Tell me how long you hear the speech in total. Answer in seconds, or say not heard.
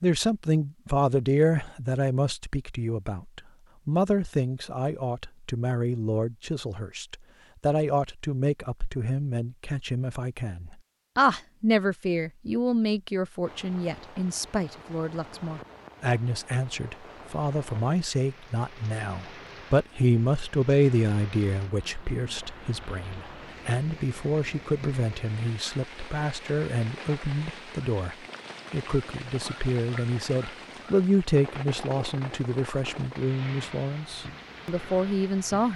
36 s.